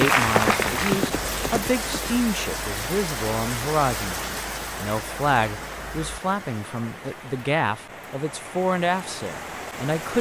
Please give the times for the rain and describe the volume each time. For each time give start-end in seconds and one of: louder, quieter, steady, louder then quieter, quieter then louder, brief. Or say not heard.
0.0-10.1 quieter.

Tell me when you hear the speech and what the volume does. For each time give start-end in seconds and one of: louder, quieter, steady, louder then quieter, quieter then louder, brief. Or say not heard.
0.0-10.1 steady.